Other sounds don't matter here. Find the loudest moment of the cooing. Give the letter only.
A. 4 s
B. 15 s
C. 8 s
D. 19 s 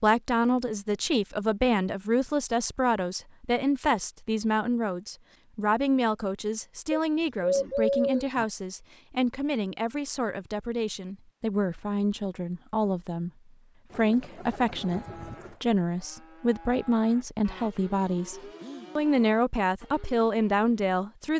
C.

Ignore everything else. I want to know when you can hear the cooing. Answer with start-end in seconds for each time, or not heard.
6.9-8.4, 13.9-15.6.